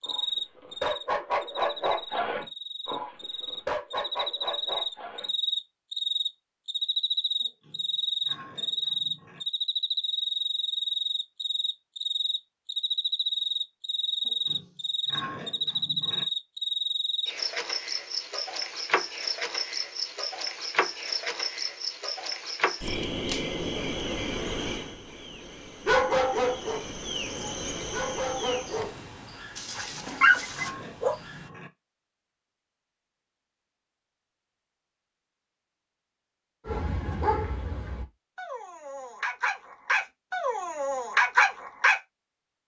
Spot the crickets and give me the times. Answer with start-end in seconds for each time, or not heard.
0.0-31.5.